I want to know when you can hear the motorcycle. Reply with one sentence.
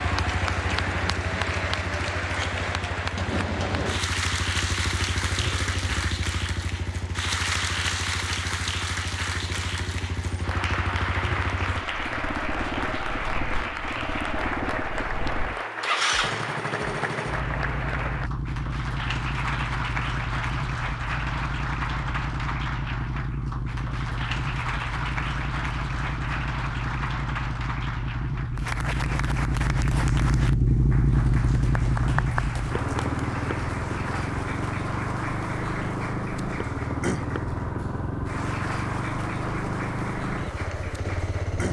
You can hear the motorcycle from 0.0 to 41.6 s.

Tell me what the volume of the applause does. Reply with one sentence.
The volume of the applause goes down.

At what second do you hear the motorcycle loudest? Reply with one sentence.
The volume of the motorcycle peaks at 31 seconds.